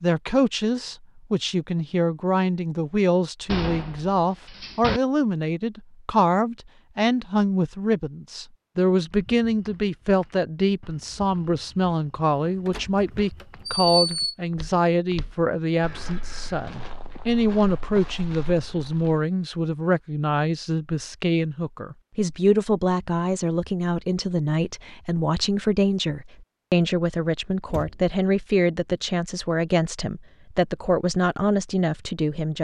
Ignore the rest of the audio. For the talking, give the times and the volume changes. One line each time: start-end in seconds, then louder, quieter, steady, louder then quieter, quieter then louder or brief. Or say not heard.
0.0-32.6 steady.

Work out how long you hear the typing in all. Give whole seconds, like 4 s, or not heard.
not heard.